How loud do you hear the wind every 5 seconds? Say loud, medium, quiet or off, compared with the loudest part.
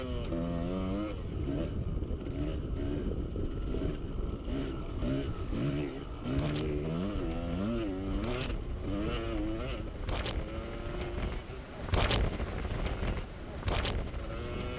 off, medium, loud.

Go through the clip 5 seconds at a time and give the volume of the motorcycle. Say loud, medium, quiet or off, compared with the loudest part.
loud, loud, medium.